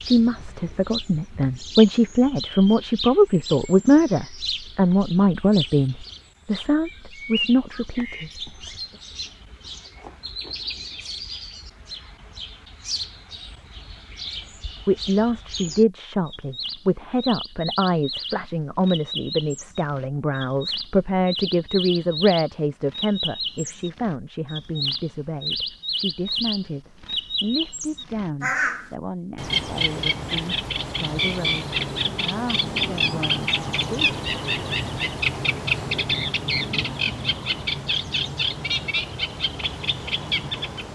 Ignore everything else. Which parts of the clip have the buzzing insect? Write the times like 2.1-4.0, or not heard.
not heard.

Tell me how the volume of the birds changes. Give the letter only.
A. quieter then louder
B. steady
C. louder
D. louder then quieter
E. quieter
C.